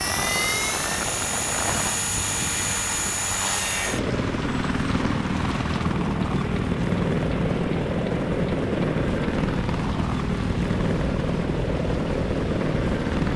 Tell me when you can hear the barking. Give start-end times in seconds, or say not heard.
not heard.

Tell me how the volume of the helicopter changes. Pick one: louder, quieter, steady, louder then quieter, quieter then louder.
steady.